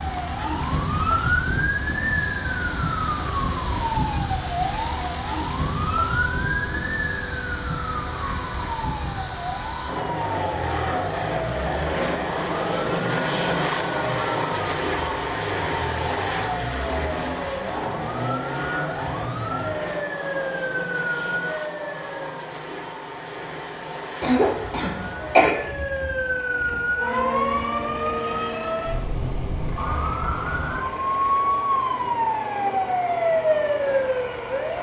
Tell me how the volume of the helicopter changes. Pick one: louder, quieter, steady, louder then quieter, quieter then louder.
louder then quieter.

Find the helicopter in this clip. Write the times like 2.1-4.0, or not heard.
0.1-34.7.